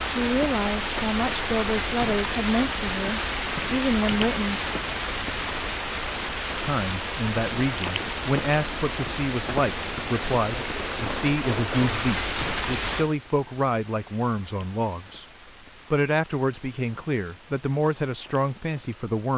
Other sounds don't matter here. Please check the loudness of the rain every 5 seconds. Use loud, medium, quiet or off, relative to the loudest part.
loud, loud, loud, quiet.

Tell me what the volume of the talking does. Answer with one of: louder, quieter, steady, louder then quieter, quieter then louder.
steady.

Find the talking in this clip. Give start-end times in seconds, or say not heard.
0.1-4.7, 6.6-15.2, 15.9-19.3.